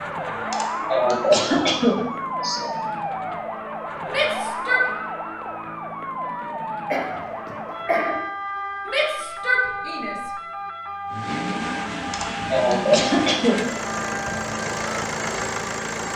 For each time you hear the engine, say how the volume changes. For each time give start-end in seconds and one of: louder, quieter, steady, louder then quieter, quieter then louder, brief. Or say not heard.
11.1-16.1 steady.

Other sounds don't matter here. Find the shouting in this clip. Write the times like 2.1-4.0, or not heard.
4.0-4.8, 8.8-10.3.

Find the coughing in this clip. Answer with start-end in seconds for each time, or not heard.
0.5-2.7, 6.9-8.2, 12.1-13.7.